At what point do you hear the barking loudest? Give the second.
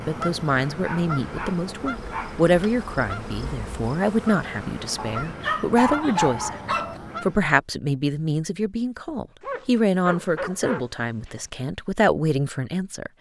6 s.